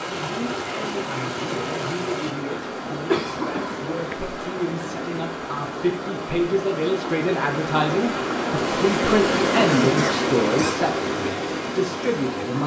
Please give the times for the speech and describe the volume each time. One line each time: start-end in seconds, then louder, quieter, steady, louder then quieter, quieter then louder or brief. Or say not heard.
0.0-12.6 louder.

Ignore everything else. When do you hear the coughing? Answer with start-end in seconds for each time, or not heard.
3.0-4.2, 9.8-10.8.